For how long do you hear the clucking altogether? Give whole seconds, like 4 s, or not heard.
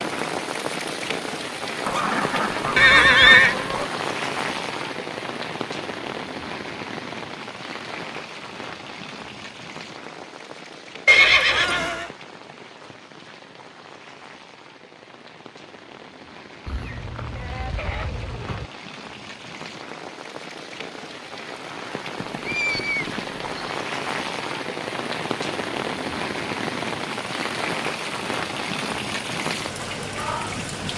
4 s.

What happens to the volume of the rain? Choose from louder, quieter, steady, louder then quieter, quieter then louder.
quieter then louder.